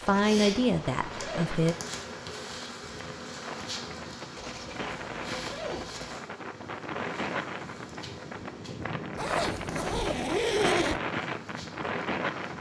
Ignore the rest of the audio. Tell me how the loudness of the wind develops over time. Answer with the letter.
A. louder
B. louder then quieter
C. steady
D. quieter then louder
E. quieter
A.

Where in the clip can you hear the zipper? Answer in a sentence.
You can hear the zipper from 0.1 to 1.6 s, from 4.3 to 6.2 s and from 9.2 to 11.0 s.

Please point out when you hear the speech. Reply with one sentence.
The speech can be heard from 0.0 to 1.8 s.